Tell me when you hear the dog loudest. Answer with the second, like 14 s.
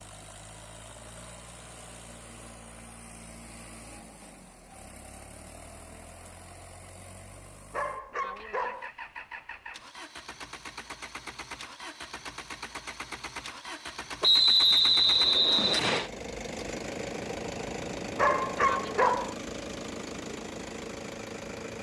19 s.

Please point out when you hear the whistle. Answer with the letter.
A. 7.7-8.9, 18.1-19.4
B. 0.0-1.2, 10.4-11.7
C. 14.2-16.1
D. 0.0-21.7
C.